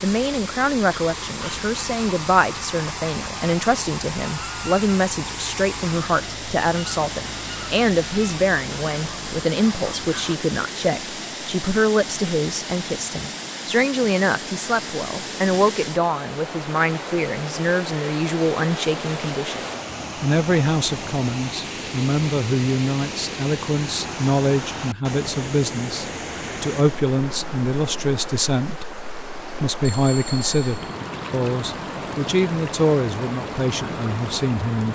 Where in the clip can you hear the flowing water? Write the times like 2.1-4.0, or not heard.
0.0-34.8.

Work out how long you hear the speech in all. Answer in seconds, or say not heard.
34 s.